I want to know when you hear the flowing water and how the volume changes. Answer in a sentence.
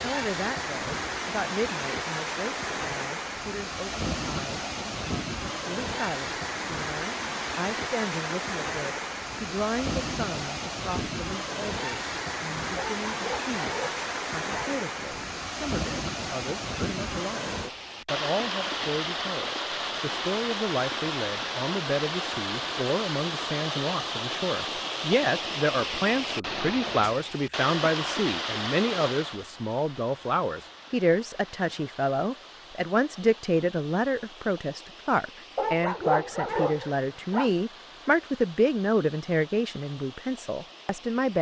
The flowing water can be heard from 0.0 to 41.3 s, getting quieter.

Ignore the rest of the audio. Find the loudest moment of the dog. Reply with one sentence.
The loudest moment of the dog is at 36 seconds.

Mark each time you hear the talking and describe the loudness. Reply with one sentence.
You can hear the talking from 0.0 to 41.3 s, getting louder.